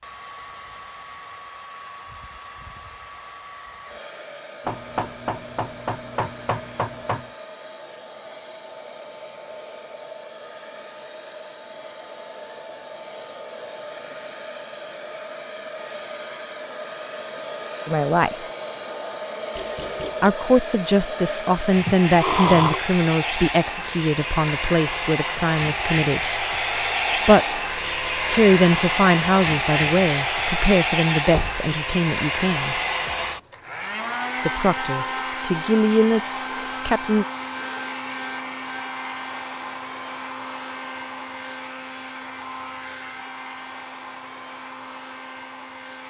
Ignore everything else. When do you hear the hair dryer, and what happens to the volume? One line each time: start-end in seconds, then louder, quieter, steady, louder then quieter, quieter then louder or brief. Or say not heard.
0.0-46.0 louder then quieter.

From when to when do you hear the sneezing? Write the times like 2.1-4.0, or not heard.
21.9-22.8.